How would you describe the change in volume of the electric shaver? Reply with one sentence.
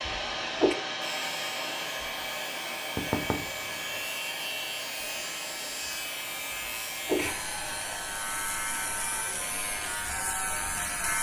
The loudness of the electric shaver goes up.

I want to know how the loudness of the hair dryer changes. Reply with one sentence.
The volume of the hair dryer goes down.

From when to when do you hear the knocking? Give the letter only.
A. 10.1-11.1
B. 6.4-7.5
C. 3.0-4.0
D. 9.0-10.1
C.